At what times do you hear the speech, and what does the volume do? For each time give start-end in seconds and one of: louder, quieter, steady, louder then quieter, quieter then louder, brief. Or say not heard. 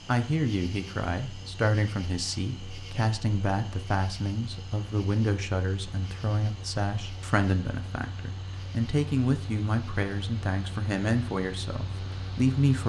0.1-12.8 steady.